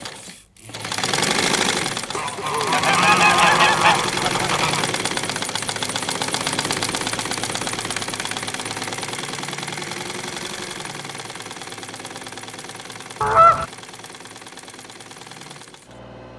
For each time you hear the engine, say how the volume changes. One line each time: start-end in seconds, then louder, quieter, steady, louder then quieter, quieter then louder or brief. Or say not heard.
0.0-16.3 quieter.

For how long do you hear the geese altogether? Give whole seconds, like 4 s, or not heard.
3 s.